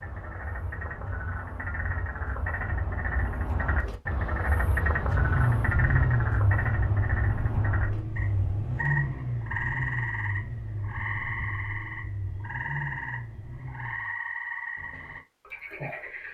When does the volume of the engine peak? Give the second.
6 s.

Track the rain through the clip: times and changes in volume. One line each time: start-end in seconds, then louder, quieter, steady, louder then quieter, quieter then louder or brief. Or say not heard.
not heard.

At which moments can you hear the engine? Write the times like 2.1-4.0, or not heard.
5.1-14.2.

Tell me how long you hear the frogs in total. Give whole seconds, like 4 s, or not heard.
16 s.